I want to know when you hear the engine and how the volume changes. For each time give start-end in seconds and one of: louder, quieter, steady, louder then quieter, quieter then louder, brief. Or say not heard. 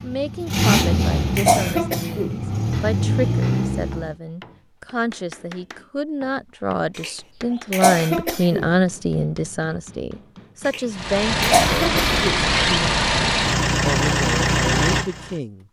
0.0-4.2 quieter then louder
10.9-15.4 steady.